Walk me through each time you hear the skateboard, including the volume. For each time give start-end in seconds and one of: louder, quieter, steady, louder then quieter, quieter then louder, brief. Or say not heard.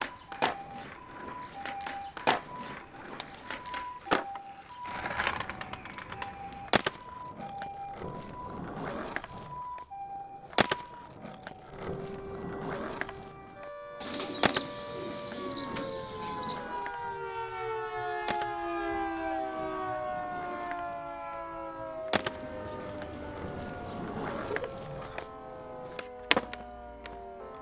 0.0-27.1 quieter then louder.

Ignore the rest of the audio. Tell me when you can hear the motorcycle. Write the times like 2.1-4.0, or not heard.
not heard.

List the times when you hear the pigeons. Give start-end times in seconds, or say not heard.
3.0-4.4, 14.0-16.6, 22.1-24.8.